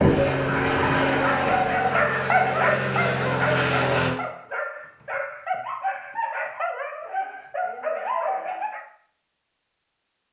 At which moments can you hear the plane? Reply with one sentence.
You can hear the plane from 0.0 to 4.2 s.